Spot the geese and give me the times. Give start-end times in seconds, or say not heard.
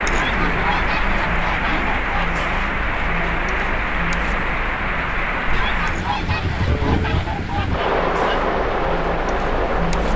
0.1-2.6, 5.5-8.4.